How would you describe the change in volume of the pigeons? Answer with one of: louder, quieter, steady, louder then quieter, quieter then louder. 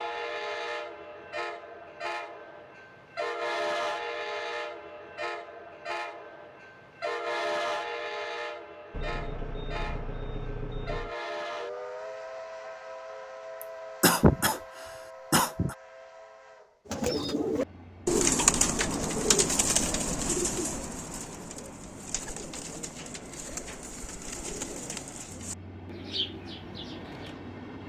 quieter.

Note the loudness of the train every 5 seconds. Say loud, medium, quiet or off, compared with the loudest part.
loud, loud, medium, quiet, quiet, medium.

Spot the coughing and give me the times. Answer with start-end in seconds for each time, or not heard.
13.6-15.8.